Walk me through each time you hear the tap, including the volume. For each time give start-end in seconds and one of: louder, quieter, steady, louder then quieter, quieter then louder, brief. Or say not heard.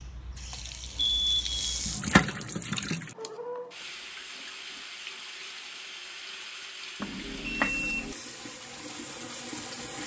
0.0-10.0 quieter.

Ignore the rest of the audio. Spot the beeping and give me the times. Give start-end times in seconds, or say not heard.
0.9-1.8, 7.0-8.2.